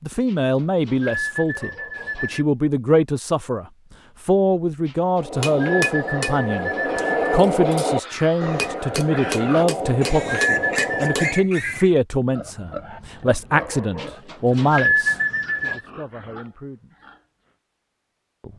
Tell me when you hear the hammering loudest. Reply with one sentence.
The loudest moment of the hammering is at 7 seconds.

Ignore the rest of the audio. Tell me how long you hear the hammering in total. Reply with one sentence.
You can hear the hammering for 6 seconds altogether.